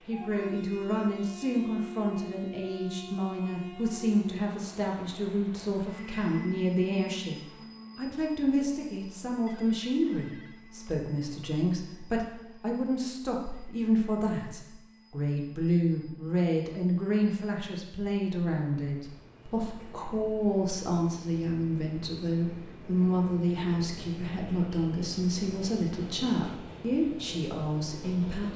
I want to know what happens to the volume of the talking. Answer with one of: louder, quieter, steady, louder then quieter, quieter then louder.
steady.